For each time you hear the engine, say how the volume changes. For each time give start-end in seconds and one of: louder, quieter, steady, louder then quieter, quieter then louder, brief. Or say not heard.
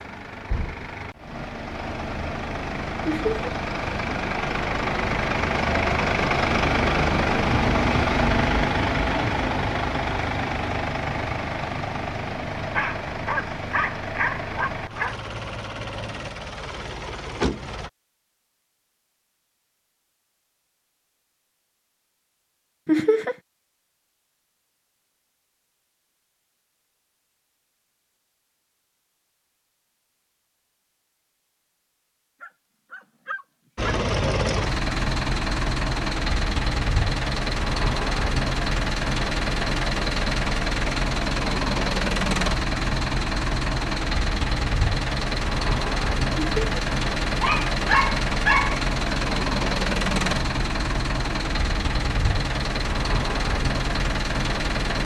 0.0-17.9 louder then quieter
33.8-55.0 steady.